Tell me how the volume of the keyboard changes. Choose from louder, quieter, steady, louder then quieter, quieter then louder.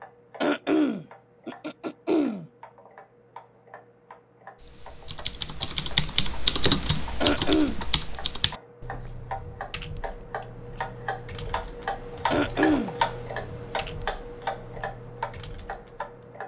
quieter.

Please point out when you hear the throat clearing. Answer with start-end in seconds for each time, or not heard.
0.4-2.5, 7.2-7.8, 12.3-12.9.